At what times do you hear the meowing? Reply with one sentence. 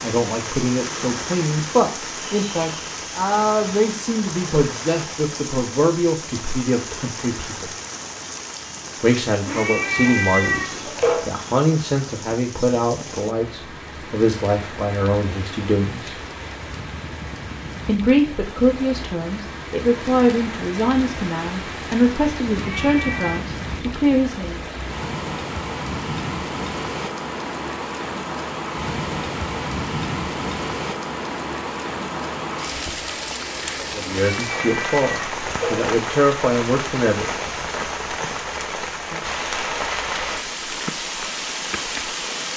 The meowing can be heard from 9.4 to 11.2 s, from 22.5 to 23.4 s and from 34.2 to 35.9 s.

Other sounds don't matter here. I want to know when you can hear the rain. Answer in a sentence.
You can hear the rain from 0.0 to 42.5 s.